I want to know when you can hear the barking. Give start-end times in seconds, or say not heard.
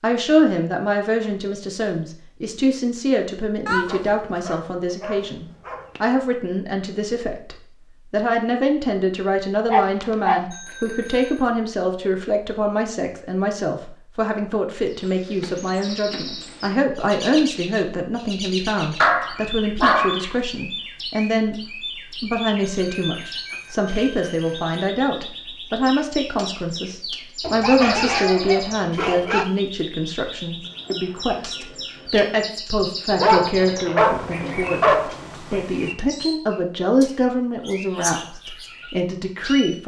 3.6-6.0, 9.7-10.4, 19.0-20.2, 27.4-29.4, 33.1-35.6.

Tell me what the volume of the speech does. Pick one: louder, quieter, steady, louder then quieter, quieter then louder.
steady.